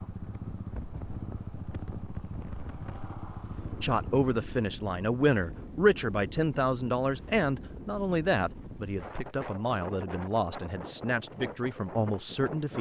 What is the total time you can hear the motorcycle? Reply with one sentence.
You can hear the motorcycle for 4 seconds altogether.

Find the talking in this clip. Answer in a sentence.
The talking can be heard from 3.8 to 12.7 s.